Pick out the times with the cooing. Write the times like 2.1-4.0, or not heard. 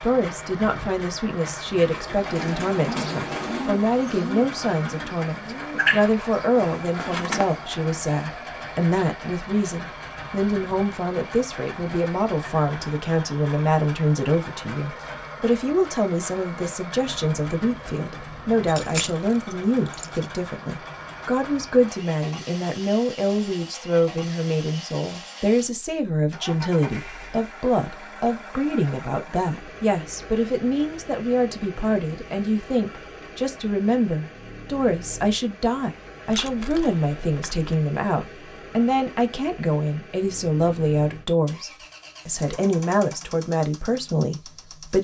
1.7-7.7.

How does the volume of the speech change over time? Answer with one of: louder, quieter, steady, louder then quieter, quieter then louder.
steady.